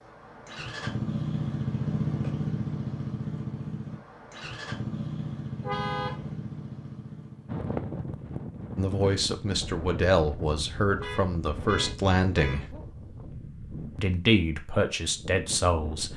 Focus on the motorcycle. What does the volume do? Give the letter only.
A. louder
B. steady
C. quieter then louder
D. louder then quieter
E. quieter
E.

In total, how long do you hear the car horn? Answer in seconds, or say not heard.
2 s.